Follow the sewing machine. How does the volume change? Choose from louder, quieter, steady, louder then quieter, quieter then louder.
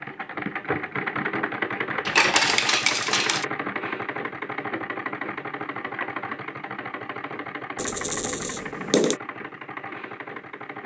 quieter.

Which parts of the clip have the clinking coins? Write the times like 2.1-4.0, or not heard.
2.0-3.5, 7.8-9.2.